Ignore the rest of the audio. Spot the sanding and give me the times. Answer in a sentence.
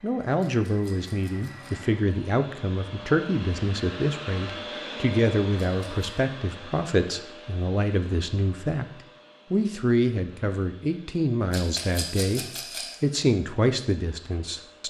You can't hear the sanding here.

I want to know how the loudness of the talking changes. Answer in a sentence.
The volume of the talking stays about the same.